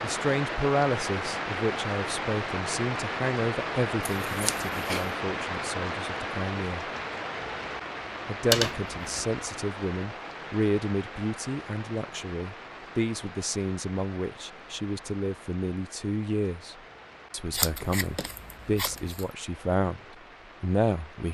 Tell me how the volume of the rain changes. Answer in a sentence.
The volume of the rain goes down.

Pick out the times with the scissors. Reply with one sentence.
You can hear the scissors from 4.0 to 5.1 s, from 8.5 to 9.2 s and from 17.5 to 19.2 s.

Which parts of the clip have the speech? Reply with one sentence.
The speech can be heard from 0.0 to 6.8 s, from 8.2 to 20.0 s and from 20.6 to 21.2 s.